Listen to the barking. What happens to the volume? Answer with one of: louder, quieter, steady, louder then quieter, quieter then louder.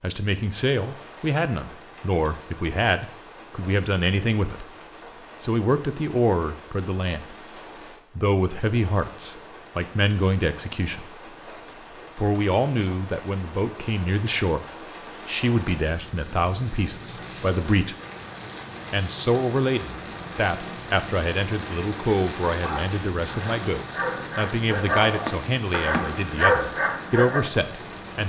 louder.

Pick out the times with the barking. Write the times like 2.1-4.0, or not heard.
22.6-27.4.